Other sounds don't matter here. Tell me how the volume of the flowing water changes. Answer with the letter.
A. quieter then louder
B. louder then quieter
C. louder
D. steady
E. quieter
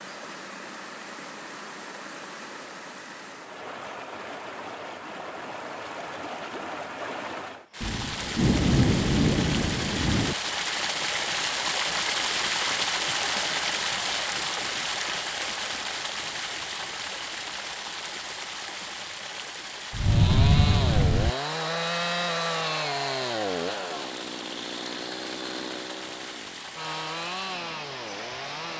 B.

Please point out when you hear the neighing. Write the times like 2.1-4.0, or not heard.
not heard.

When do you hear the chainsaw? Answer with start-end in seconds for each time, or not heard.
19.9-28.7.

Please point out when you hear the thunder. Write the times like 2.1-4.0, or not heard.
7.8-10.3, 19.9-21.3.